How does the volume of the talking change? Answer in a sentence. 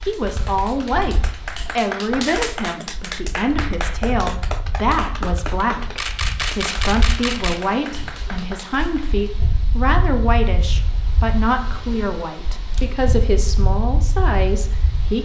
The volume of the talking stays about the same.